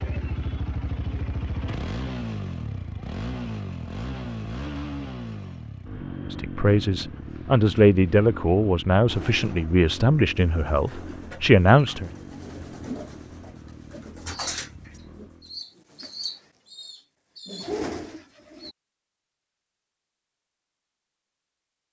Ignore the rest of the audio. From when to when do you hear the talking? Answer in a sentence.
The talking can be heard from 6.3 to 12.1 s.